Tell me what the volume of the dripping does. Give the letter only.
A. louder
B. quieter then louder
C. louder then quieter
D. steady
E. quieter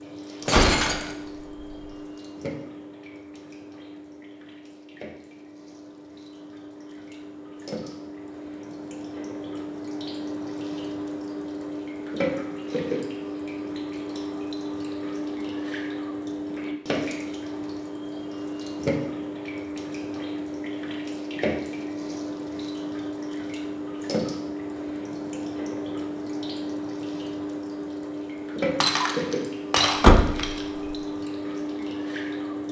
A.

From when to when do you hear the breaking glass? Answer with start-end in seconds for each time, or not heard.
0.5-1.1, 28.8-30.5.